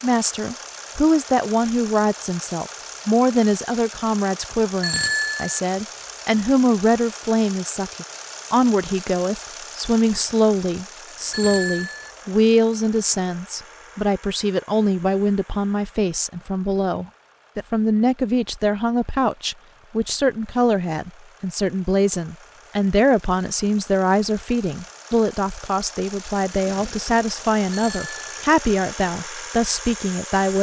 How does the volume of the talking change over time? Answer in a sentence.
The loudness of the talking stays about the same.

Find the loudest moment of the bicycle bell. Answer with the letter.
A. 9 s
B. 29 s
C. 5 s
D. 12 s
C.